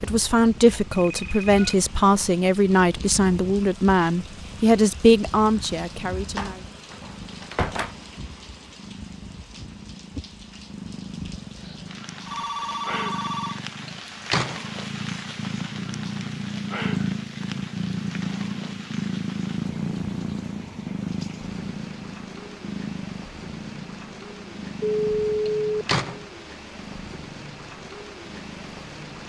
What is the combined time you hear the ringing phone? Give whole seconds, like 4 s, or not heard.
3 s.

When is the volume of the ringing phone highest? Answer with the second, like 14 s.
25 s.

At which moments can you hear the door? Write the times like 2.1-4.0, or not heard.
6.3-8.0, 13.8-14.7, 25.4-26.2.